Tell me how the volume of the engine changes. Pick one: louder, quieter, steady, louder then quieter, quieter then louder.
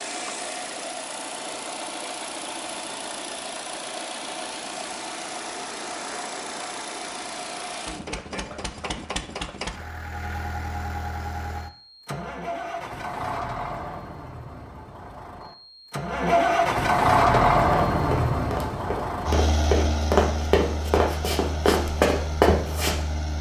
louder then quieter.